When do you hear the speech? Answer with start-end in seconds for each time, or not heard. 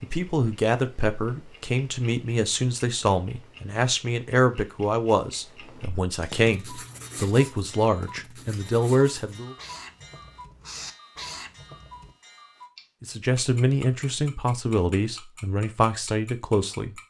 0.0-9.6, 13.0-16.9.